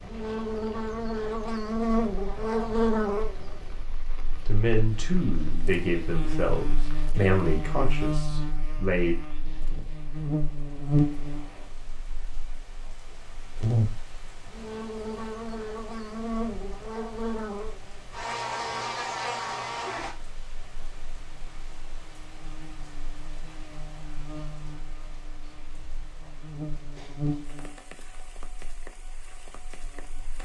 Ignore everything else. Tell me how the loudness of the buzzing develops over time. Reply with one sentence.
The volume of the buzzing goes down.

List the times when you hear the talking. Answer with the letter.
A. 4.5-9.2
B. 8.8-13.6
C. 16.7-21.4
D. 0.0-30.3
A.